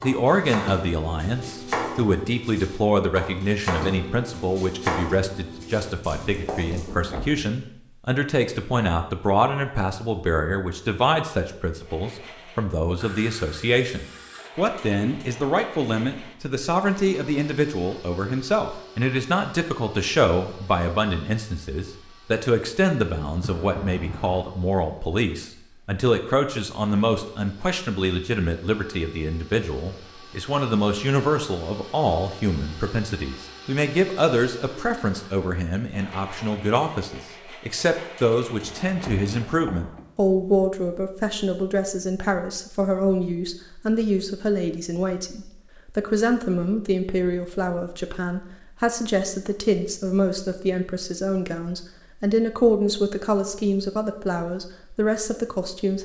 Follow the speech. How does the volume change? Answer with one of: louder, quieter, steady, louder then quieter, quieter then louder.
steady.